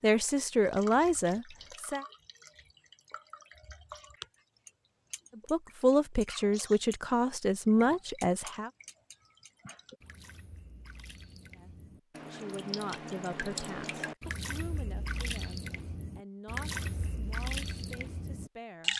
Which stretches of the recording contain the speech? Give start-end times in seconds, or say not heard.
0.0-2.0, 5.3-8.7, 11.6-18.9.